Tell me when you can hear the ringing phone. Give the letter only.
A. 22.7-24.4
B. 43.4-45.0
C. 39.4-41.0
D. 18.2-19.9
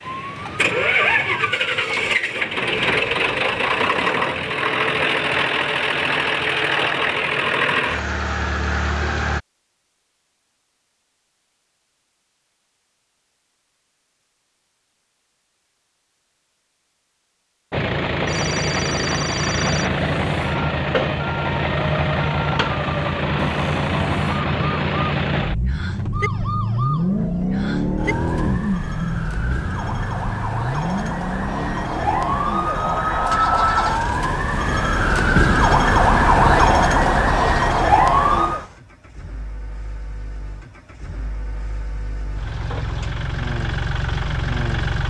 D.